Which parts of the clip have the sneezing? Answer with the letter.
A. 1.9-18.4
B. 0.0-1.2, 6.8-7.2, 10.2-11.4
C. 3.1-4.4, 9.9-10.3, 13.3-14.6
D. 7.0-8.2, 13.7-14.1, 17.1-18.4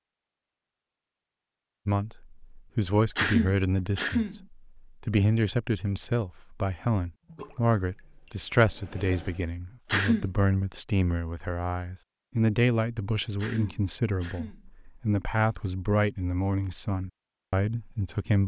C.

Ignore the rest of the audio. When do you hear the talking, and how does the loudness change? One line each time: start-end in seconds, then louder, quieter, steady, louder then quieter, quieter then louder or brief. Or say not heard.
1.9-18.4 steady.